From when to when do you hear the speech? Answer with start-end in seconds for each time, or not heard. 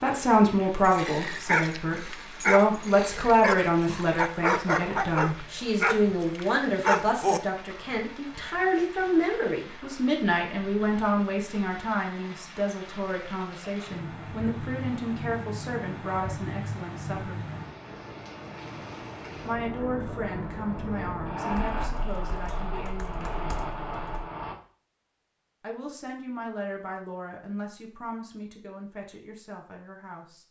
0.0-17.4, 19.4-23.6, 25.6-30.4.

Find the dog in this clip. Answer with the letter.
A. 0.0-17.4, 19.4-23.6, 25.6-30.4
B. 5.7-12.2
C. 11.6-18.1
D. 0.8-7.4
D.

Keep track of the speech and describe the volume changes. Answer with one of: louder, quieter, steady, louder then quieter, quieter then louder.
quieter.